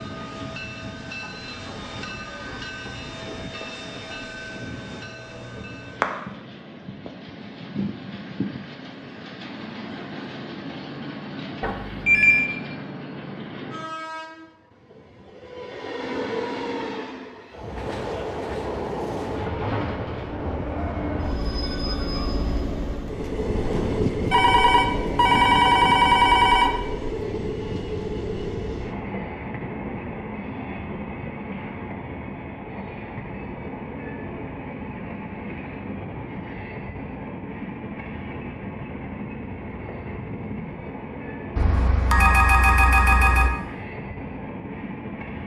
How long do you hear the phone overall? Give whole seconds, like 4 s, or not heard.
5 s.